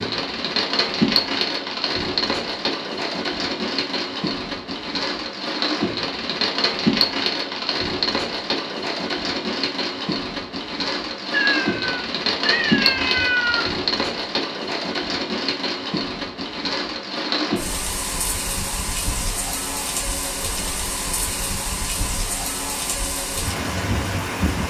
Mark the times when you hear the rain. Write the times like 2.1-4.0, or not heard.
0.0-24.6.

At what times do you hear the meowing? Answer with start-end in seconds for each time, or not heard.
11.3-13.7.